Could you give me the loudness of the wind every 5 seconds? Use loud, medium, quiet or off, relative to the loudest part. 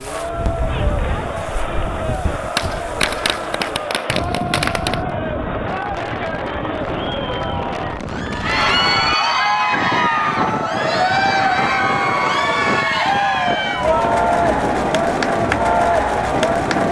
medium, loud, loud, loud.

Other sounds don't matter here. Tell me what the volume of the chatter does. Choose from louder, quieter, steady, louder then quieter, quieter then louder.
louder.